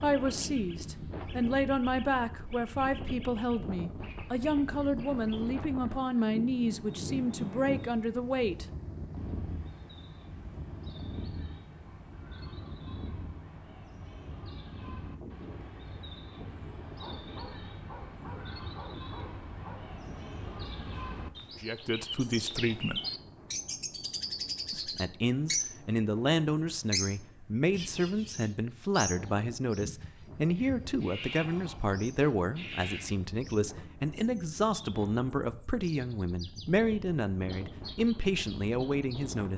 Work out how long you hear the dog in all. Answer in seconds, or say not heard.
3 s.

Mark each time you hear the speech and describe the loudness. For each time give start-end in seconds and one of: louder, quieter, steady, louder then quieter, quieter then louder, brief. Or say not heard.
0.0-8.7 steady
21.6-23.0 brief
24.7-39.5 steady.